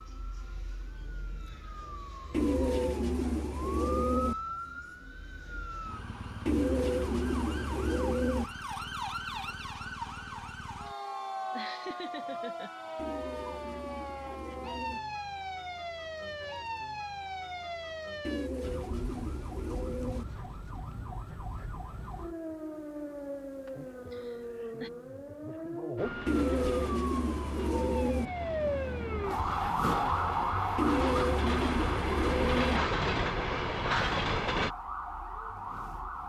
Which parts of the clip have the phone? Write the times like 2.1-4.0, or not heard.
not heard.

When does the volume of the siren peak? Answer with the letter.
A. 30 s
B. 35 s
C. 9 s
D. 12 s
A.